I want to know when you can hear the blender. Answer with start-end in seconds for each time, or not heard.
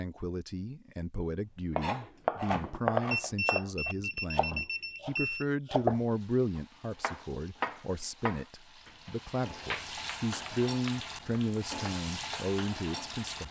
not heard.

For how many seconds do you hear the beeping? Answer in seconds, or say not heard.
2 s.